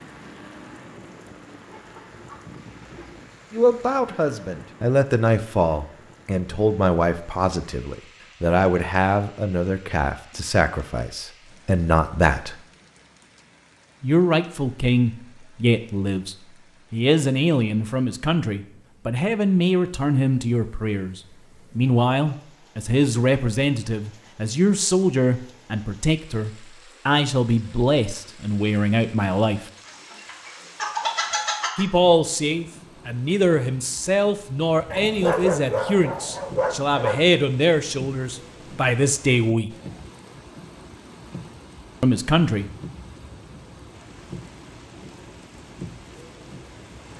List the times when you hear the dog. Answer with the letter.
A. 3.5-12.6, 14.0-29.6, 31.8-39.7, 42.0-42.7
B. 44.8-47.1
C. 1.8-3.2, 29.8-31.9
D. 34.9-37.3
D.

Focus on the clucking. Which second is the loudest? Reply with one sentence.
The loudest moment of the clucking is at 31 seconds.